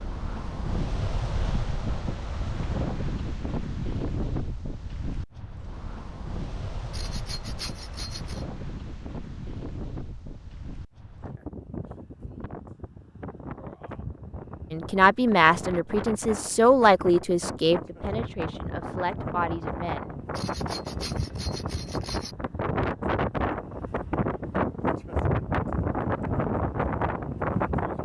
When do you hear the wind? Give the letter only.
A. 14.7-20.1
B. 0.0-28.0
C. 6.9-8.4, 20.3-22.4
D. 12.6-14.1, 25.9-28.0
B.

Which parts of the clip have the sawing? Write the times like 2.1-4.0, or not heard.
6.9-8.4, 20.3-22.4.